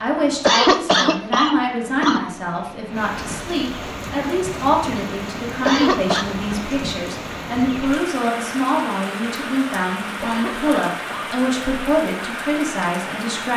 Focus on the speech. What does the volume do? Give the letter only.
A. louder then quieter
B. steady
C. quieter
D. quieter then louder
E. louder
B.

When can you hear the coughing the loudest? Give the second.
1 s.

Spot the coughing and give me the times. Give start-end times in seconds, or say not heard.
0.4-2.3, 5.7-6.2, 10.2-11.3.